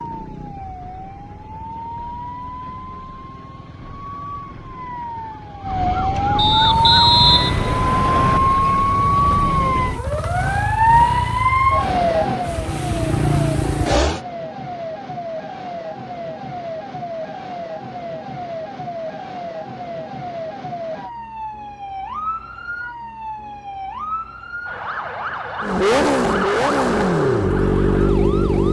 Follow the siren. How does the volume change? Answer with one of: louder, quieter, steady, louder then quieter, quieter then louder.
louder then quieter.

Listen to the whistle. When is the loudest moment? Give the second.
7 s.